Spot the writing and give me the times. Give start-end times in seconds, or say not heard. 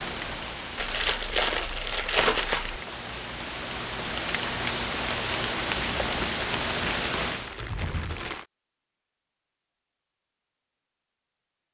not heard.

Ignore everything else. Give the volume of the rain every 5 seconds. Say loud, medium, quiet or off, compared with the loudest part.
medium, loud, off.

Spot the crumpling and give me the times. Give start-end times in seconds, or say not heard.
0.8-2.8, 6.0-8.4.